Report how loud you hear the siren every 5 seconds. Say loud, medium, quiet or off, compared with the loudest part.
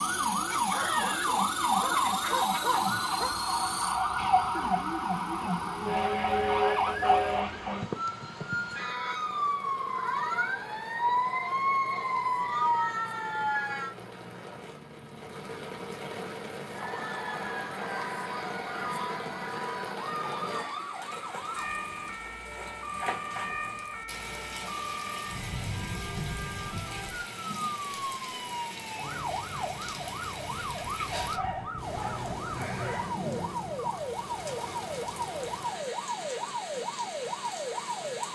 loud, loud, loud, medium, medium, medium, medium, medium.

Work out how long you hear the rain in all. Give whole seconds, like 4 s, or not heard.
38 s.